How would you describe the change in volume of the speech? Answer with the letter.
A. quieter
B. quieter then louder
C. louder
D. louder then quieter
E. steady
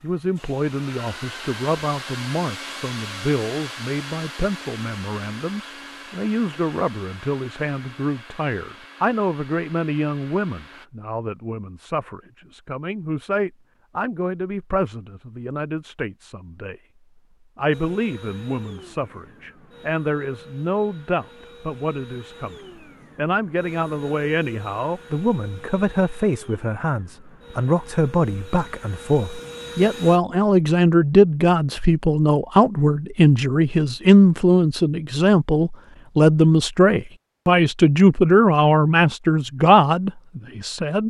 C.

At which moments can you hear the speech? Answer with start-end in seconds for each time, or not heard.
0.0-16.8, 17.6-22.6, 23.1-41.0.